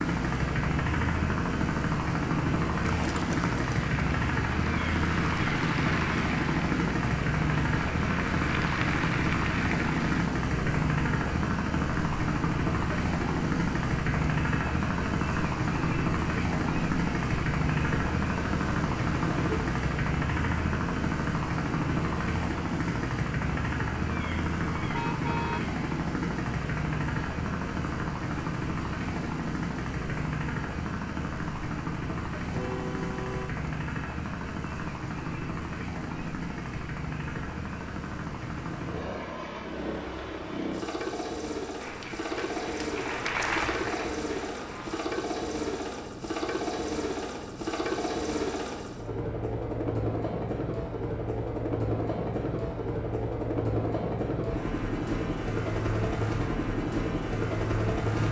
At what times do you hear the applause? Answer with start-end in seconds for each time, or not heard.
2.8-10.3, 41.8-45.0.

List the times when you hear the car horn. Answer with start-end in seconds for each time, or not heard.
24.9-25.6, 32.5-33.5.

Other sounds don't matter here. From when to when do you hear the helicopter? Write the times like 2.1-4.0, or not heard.
0.0-58.2.